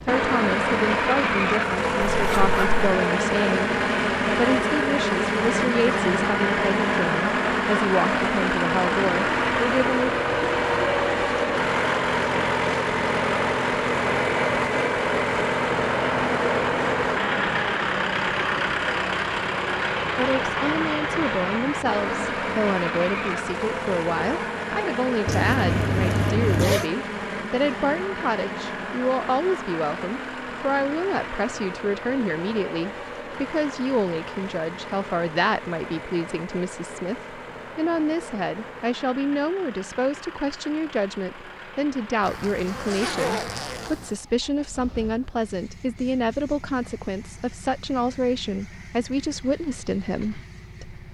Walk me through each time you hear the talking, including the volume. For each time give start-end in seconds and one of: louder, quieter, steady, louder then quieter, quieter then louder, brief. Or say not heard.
0.0-10.1 steady
20.1-51.1 steady.